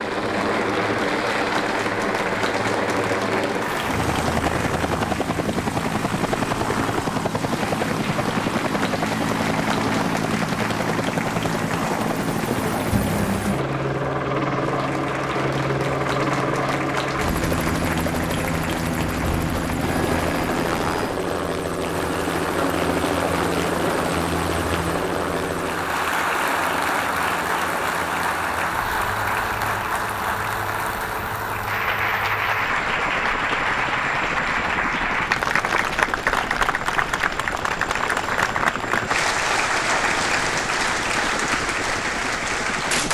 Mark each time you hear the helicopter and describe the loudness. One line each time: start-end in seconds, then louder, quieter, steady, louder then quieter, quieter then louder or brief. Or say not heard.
0.0-43.1 quieter.